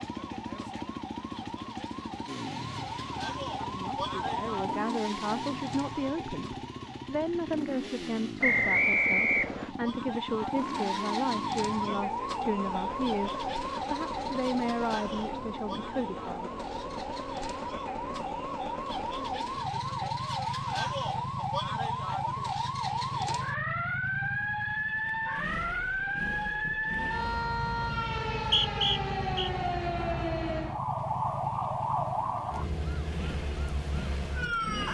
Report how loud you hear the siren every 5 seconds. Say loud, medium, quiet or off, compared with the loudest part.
medium, medium, loud, medium, loud, loud, loud.